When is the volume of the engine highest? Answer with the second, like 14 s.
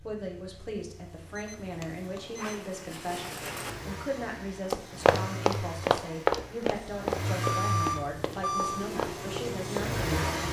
10 s.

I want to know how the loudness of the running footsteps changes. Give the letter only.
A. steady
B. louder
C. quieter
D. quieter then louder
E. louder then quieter
C.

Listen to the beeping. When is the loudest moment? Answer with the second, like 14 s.
8 s.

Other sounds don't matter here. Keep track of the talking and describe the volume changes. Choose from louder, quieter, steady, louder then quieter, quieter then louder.
steady.